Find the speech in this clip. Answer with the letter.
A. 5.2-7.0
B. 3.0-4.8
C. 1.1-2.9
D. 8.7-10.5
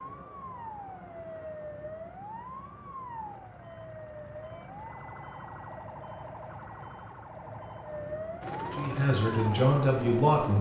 D.